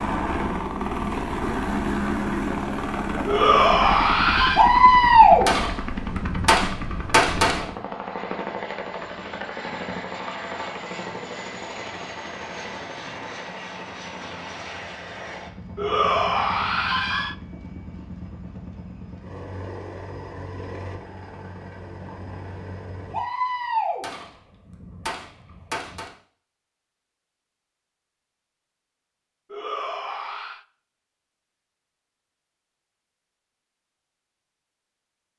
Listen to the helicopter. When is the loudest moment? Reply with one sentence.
The volume of the helicopter peaks at 2 seconds.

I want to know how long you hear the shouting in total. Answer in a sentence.
You can hear the shouting for 4 seconds altogether.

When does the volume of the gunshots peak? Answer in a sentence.
The loudest moment of the gunshots is at 5 seconds.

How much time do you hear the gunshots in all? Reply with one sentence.
The gunshots can be heard for 6 seconds in total.